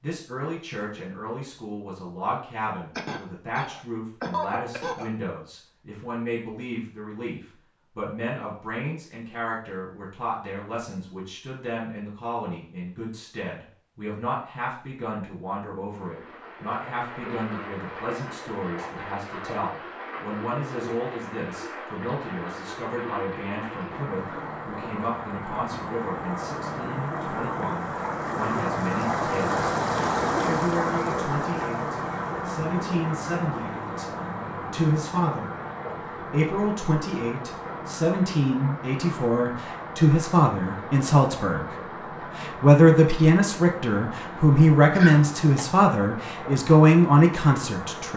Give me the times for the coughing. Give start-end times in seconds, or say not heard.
3.0-5.1, 45.0-45.6.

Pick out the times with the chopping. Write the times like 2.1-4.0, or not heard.
not heard.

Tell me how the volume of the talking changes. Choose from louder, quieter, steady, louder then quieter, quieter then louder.
louder.